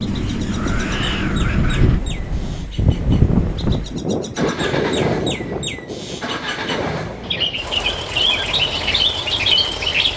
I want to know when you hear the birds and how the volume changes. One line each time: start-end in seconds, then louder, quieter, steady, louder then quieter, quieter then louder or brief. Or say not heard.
0.0-10.1 louder.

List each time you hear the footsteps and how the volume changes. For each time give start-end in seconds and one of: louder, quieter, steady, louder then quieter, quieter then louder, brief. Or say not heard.
not heard.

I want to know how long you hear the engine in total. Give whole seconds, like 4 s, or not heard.
10 s.